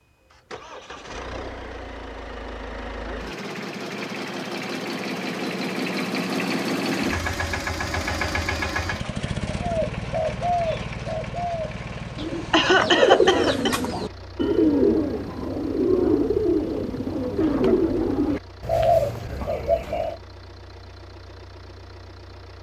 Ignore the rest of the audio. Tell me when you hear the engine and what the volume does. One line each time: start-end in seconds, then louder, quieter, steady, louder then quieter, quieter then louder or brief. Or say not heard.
0.0-22.5 louder then quieter.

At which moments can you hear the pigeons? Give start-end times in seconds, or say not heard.
9.6-20.1.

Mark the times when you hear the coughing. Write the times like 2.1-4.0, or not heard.
12.5-13.8.